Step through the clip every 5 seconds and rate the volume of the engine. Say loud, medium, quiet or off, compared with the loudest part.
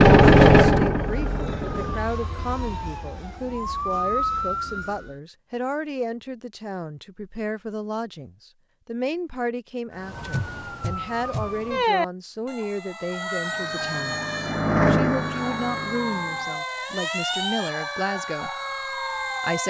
loud, off, medium, quiet.